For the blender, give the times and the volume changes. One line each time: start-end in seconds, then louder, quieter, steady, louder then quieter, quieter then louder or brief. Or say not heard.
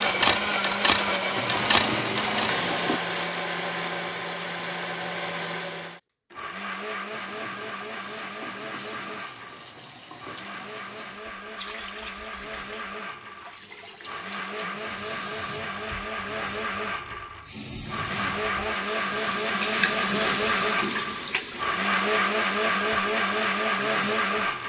0.0-24.6 quieter then louder.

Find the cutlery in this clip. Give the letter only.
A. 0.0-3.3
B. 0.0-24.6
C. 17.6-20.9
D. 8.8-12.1
A.